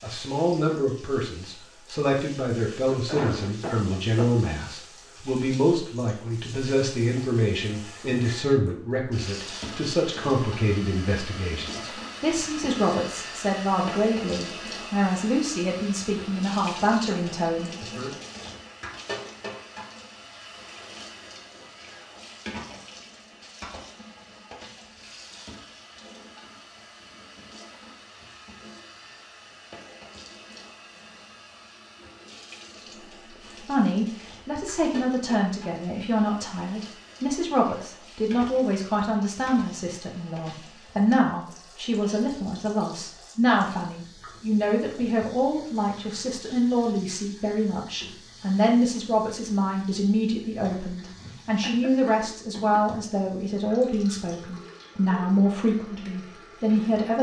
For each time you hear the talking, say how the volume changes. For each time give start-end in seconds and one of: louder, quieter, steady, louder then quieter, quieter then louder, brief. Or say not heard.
0.0-18.1 steady
33.2-57.1 steady.